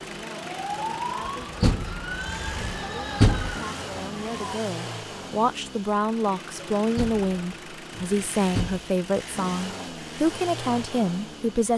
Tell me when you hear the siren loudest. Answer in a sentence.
The volume of the siren peaks at 1 second.